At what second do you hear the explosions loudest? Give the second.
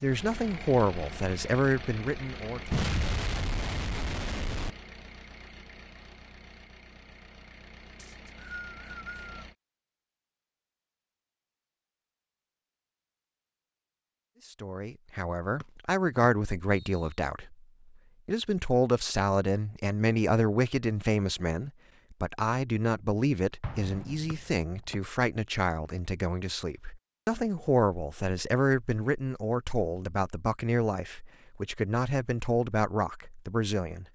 3 s.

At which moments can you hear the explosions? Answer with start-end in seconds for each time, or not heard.
2.7-4.7, 23.6-24.6.